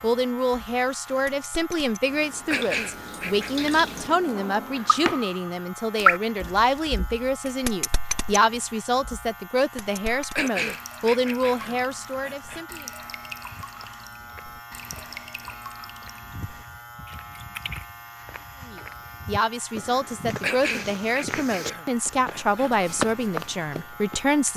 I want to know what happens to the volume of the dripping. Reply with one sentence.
The loudness of the dripping goes up, then down.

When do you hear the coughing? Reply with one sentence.
You can hear the coughing from 2.5 to 3.7 s, from 10.3 to 12.7 s and from 20.4 to 22.7 s.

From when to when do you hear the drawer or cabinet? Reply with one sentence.
You can hear the drawer or cabinet from 4.0 to 5.2 s.